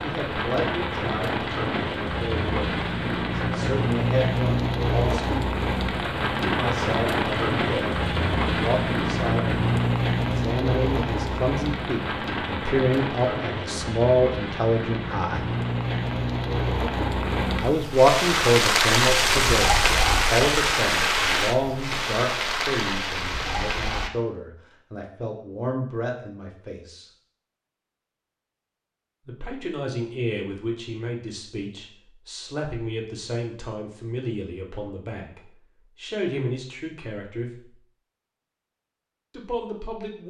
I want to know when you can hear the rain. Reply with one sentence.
You can hear the rain from 0.0 to 24.1 s.